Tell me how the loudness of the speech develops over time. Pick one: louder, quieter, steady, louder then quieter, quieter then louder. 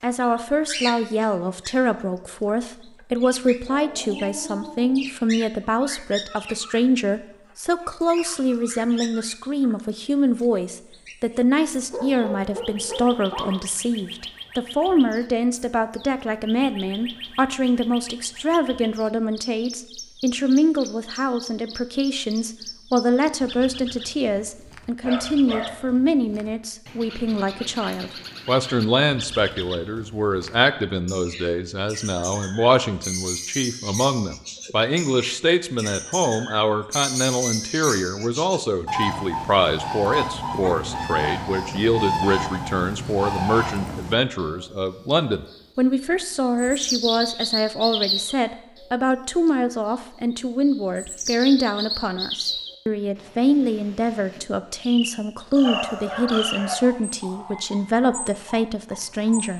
steady.